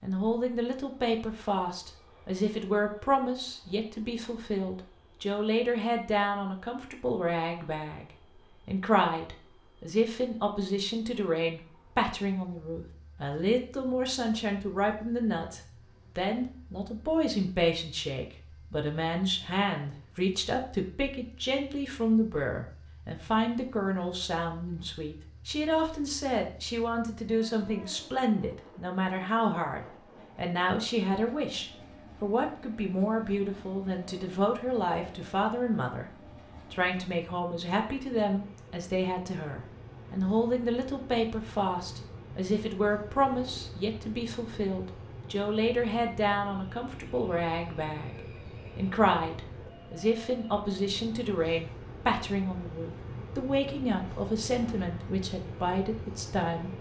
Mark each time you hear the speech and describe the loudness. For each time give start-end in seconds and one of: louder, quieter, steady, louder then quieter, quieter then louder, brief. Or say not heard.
0.0-36.0 steady
36.7-56.7 steady.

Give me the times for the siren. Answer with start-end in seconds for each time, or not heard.
not heard.